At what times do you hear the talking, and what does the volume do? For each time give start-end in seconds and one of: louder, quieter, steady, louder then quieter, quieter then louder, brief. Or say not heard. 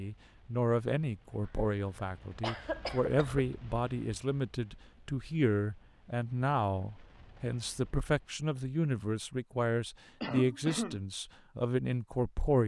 0.0-12.6 steady.